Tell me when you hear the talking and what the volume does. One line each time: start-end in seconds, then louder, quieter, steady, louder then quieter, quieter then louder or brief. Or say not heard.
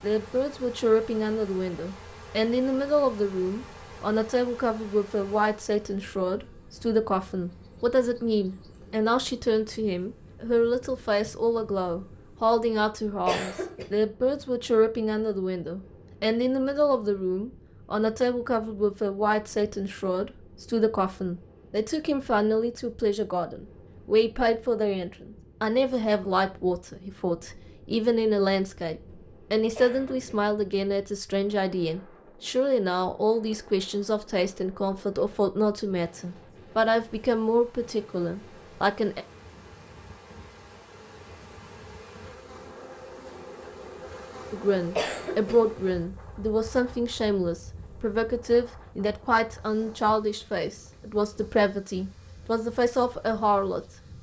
0.0-39.2 steady
44.5-54.1 steady.